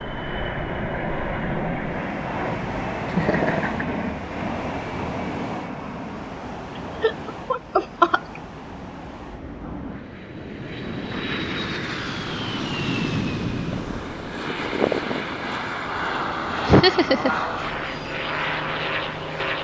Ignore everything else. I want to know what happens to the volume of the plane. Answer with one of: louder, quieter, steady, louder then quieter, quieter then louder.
quieter then louder.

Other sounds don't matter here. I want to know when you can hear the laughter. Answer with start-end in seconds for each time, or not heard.
3.1-3.9, 7.0-8.4, 16.6-17.4.